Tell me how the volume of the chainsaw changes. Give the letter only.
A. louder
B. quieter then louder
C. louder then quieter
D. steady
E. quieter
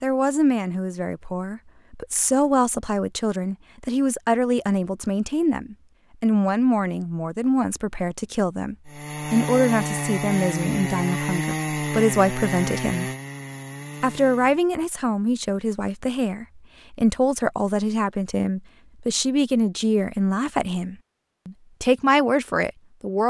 E.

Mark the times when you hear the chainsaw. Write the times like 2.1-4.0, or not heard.
8.8-14.6.